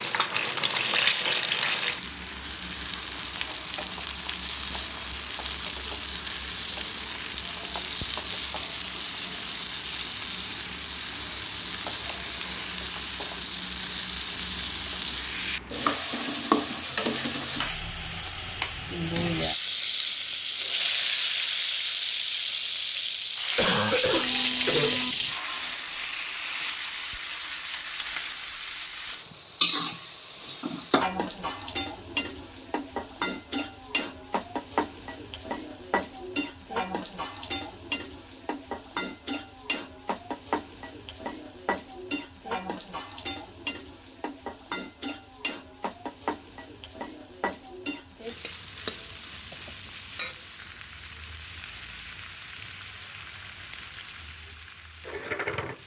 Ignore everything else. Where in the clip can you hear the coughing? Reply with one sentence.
The coughing can be heard from 23.6 to 25.1 s and from 49.5 to 50.3 s.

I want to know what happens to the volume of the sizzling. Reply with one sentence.
The volume of the sizzling goes down.